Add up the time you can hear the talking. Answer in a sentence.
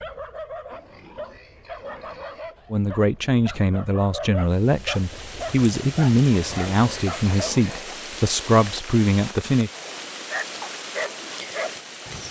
You can hear the talking for 7 seconds altogether.